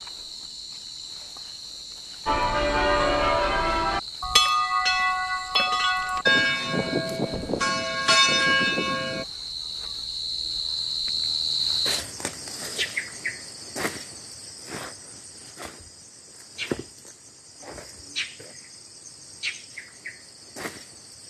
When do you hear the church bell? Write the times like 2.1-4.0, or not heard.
2.2-9.2.